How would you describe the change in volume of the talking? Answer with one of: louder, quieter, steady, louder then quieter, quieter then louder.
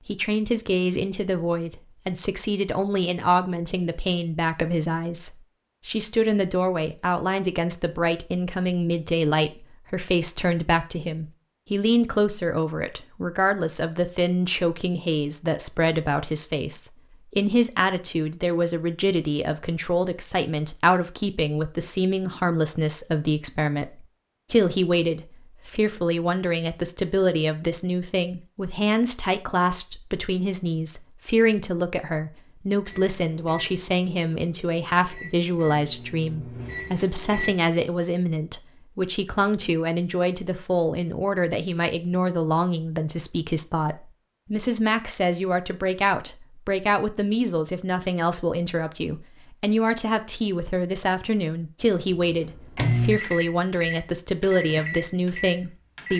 steady.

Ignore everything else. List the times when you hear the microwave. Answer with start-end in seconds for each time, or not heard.
32.9-37.5, 52.3-56.1.